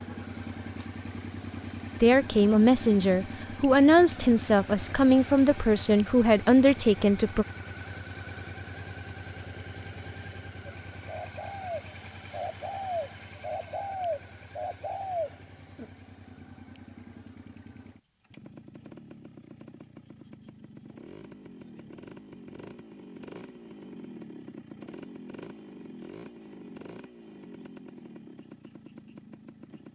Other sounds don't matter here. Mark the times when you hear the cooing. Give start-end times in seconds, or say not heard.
10.9-15.9.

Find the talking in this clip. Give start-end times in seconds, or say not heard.
2.0-7.5.